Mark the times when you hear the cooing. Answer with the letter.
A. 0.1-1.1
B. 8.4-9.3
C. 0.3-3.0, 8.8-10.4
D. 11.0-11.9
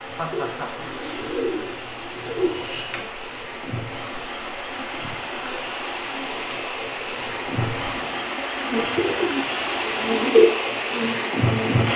C.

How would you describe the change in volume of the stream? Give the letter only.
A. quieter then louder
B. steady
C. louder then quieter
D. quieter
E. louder
E.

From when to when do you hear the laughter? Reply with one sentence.
You can hear the laughter from 0.1 to 1.1 s.